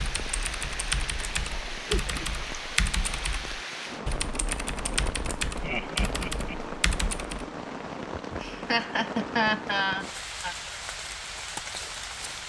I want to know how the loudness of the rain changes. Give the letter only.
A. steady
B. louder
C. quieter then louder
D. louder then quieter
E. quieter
A.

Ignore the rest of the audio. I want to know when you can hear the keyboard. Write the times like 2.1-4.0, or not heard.
0.0-7.5.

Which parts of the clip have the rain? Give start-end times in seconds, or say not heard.
0.0-12.4.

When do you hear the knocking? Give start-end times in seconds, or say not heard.
not heard.